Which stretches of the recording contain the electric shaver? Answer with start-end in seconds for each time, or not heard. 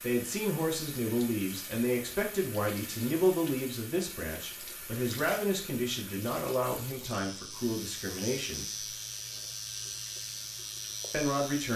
7.0-11.7.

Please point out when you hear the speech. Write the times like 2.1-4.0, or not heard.
0.0-8.9, 11.1-11.7.